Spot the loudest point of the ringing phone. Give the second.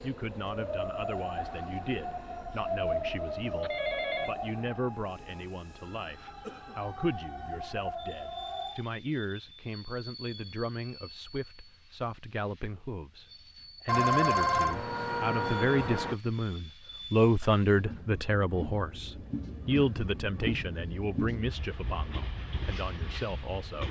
14 s.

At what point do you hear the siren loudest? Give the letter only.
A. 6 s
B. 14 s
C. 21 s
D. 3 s
D.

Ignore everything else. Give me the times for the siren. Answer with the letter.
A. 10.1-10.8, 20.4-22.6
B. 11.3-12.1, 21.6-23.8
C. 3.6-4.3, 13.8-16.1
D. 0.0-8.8
D.